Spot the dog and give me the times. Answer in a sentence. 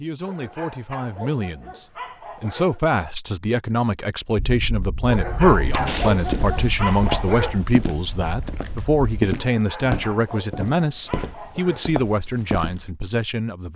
You can hear the dog from 0.2 to 2.8 s, from 5.0 to 7.7 s and from 9.3 to 11.9 s.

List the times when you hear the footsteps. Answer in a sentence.
You can hear the footsteps from 5.5 to 12.9 s.